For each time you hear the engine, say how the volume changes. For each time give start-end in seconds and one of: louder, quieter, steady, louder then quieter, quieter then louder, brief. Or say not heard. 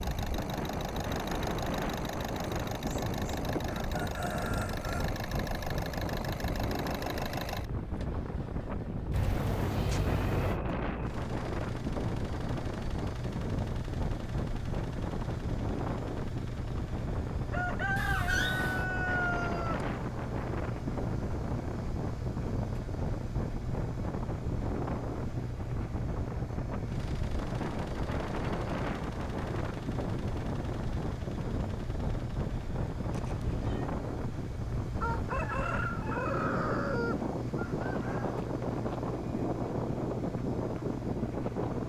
0.0-41.8 steady.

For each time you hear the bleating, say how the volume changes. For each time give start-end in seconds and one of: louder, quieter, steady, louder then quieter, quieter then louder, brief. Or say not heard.
not heard.